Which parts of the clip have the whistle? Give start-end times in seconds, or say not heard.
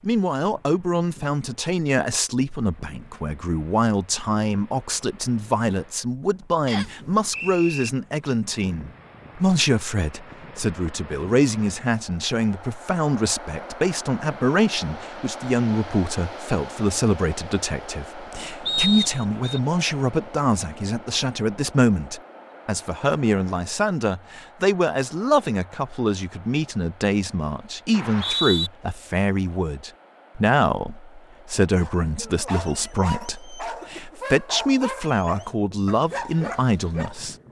6.7-7.9, 18.6-19.6, 27.9-28.7.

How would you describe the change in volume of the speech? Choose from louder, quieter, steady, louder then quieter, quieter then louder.
steady.